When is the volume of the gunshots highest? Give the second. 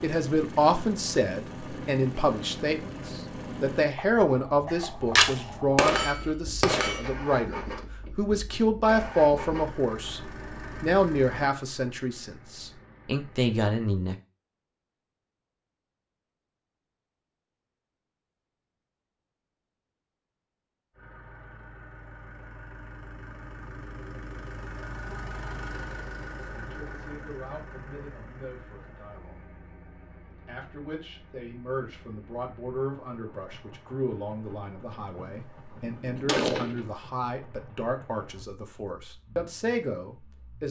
5 s.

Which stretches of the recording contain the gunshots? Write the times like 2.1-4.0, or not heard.
4.7-7.0, 34.9-36.9.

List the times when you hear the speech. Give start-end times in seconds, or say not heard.
0.0-14.2, 26.5-29.4, 30.4-40.6.